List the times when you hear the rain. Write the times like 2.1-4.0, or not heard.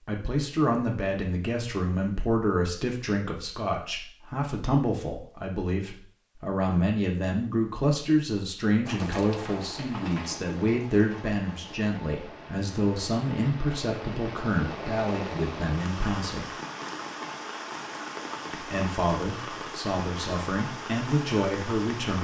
8.8-22.2.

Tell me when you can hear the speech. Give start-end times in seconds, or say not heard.
0.1-16.5, 18.5-22.2.